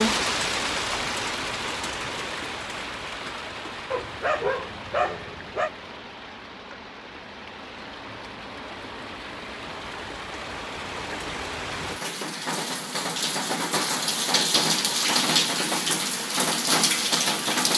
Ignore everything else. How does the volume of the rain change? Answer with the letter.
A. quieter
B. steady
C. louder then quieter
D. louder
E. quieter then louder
E.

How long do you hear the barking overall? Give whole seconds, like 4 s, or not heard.
2 s.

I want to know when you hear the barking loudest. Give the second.
4 s.